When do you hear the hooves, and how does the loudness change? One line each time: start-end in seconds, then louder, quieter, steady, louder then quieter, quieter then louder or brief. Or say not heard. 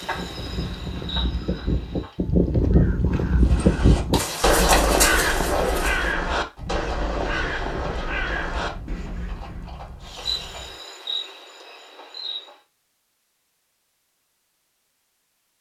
3.4-10.8 quieter.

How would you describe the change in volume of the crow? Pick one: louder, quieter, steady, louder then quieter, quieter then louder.
louder then quieter.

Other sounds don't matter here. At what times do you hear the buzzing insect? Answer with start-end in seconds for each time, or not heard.
0.0-2.2, 10.1-12.6.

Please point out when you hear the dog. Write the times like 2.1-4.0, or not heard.
not heard.